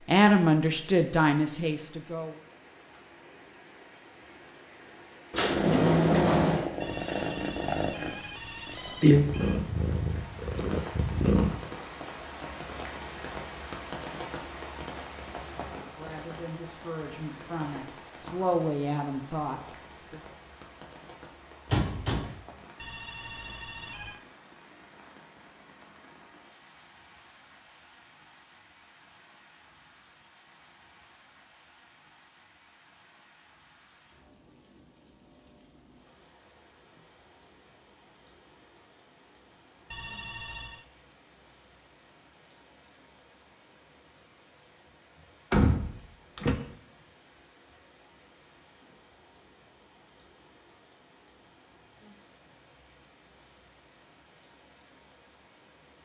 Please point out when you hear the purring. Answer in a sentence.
The purring can be heard from 5.5 to 11.6 s.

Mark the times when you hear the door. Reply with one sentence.
You can hear the door from 5.3 to 6.7 s, from 21.7 to 22.3 s and from 45.5 to 46.6 s.